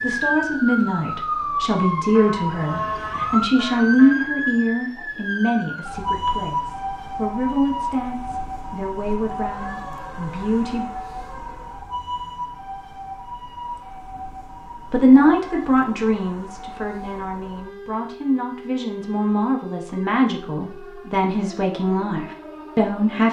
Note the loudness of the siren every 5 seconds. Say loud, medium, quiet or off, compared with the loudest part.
loud, loud, medium, quiet, quiet.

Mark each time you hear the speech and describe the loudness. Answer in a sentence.
The speech can be heard from 0.0 to 10.9 s, getting quieter; and from 14.9 to 23.2 s, getting quieter then louder.